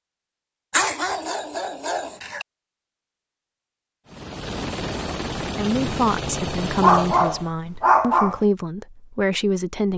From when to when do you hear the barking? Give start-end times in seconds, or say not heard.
0.7-2.5, 6.8-8.4.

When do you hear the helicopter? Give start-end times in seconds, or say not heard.
4.0-7.5.